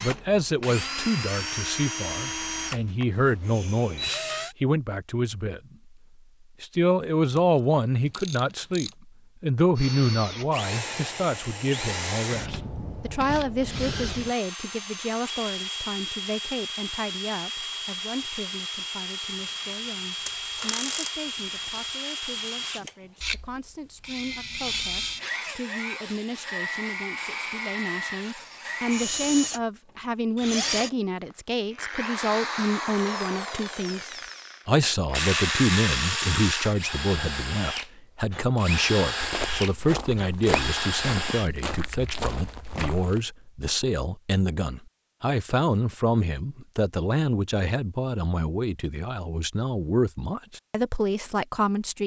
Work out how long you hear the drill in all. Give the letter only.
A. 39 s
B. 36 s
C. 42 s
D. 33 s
B.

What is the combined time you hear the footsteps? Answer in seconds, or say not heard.
4 s.